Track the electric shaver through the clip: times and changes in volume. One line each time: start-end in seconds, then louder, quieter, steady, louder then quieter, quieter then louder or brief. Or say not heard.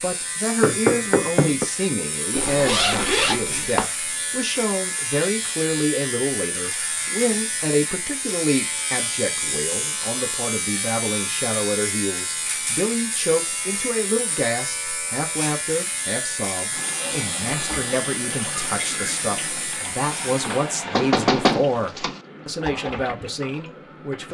0.0-20.7 steady.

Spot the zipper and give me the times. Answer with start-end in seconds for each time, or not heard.
2.3-3.9.